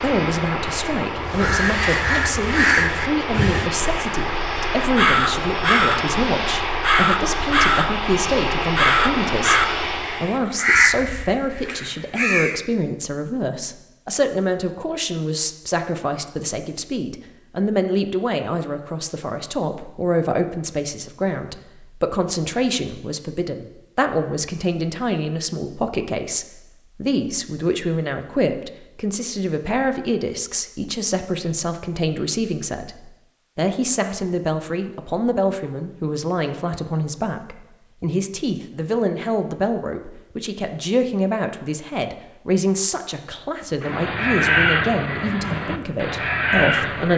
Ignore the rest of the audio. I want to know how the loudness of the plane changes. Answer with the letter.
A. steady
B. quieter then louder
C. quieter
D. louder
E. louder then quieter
A.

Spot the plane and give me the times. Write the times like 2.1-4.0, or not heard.
0.0-10.4.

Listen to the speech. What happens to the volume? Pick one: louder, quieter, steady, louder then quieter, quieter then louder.
steady.